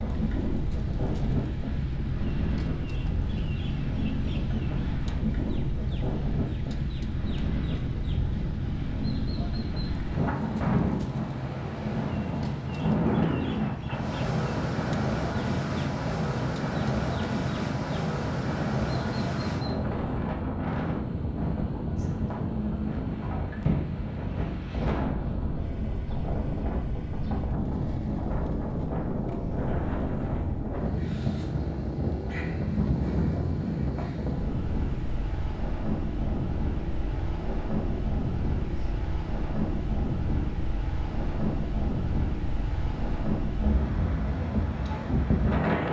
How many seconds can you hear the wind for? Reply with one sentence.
The wind can be heard for 46 seconds in total.